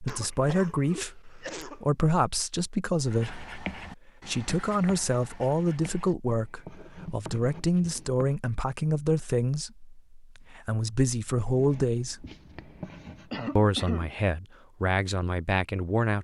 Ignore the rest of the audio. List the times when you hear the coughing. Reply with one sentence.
You can hear the coughing from 0.1 to 1.9 s and from 13.3 to 14.1 s.